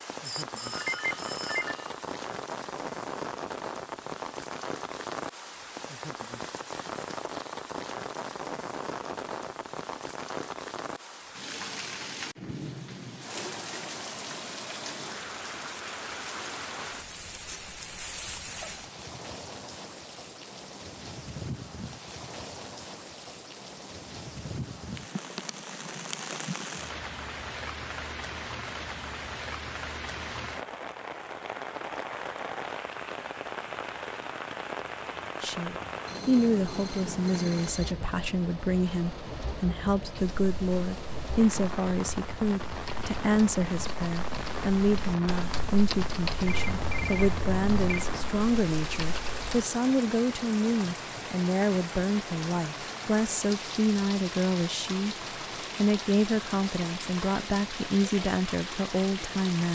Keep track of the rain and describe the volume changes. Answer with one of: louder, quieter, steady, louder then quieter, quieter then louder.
steady.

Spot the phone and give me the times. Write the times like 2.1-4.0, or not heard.
0.2-1.9, 35.9-38.0, 46.5-48.0.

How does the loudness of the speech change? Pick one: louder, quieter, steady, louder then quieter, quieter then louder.
steady.